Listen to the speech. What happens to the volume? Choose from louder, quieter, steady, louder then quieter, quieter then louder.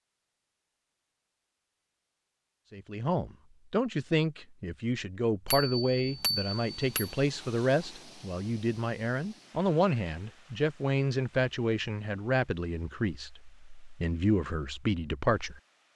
steady.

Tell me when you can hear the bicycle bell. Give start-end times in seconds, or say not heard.
5.5-7.1.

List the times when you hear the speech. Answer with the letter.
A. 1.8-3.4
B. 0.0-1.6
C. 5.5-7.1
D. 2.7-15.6
D.